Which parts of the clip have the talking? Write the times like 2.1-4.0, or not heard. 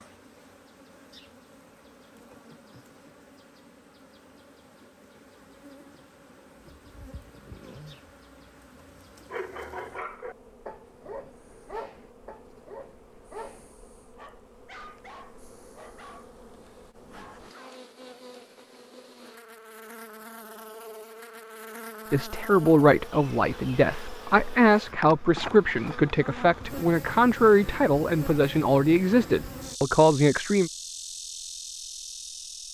22.1-30.7.